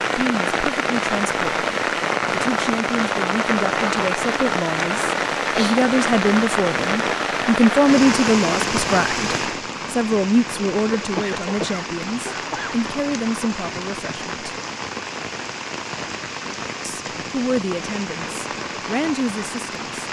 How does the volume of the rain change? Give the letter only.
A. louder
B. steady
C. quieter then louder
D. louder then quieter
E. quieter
E.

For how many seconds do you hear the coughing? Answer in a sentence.
You can hear the coughing for 2 seconds altogether.